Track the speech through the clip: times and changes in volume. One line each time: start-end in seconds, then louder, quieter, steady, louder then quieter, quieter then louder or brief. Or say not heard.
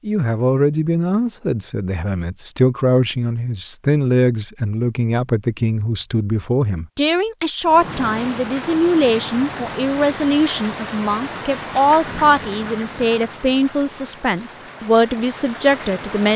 0.1-16.3 steady.